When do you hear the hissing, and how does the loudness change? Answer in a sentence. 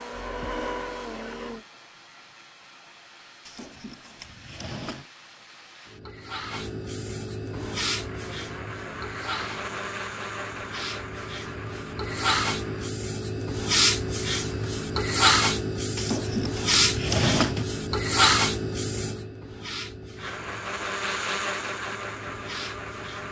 You can hear the hissing from 0.0 to 23.2 s, getting louder then quieter.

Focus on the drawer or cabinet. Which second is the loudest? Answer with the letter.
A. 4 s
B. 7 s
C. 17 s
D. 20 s
C.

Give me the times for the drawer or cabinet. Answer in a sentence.
You can hear the drawer or cabinet from 3.5 to 5.1 s and from 15.9 to 17.6 s.